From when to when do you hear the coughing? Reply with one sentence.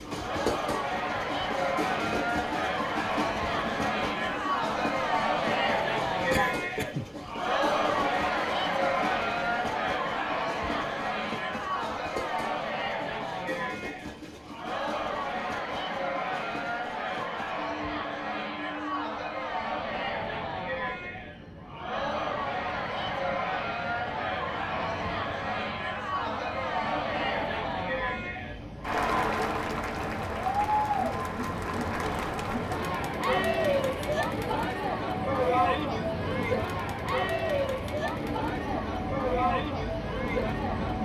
You can hear the coughing from 6.3 to 7.0 s.